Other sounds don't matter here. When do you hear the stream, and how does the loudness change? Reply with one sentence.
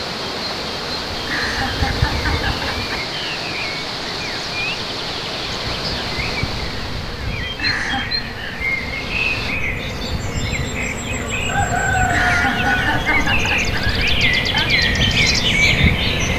The stream can be heard from 0.0 to 9.6 s, getting quieter.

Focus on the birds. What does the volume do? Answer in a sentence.
The loudness of the birds goes up.